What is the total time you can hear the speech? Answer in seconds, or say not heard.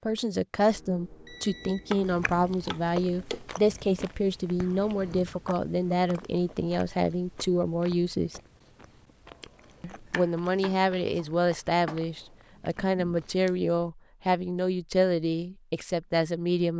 15 s.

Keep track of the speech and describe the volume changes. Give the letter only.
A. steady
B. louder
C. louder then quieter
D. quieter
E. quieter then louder
A.